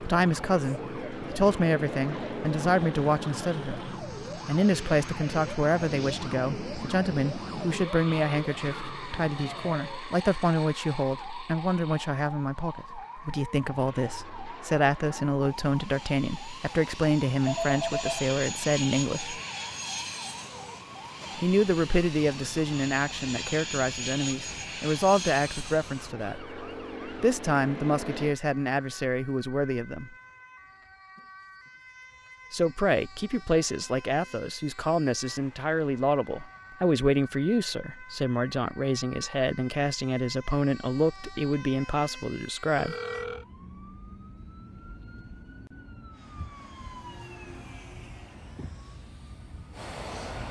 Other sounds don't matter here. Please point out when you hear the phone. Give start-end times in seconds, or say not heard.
17.4-18.2, 42.8-43.5.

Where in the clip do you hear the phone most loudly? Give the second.
18 s.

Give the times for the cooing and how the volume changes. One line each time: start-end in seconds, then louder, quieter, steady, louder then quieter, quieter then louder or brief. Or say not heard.
not heard.